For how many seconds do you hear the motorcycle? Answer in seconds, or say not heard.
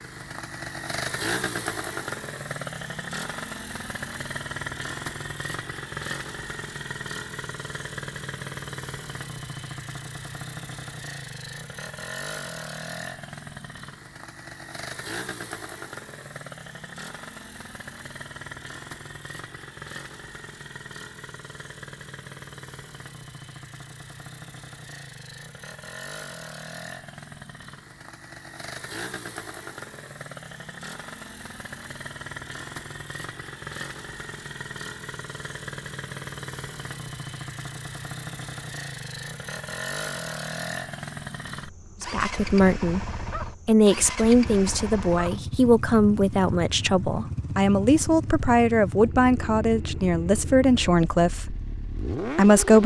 53 s.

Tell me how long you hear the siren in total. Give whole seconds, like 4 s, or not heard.
not heard.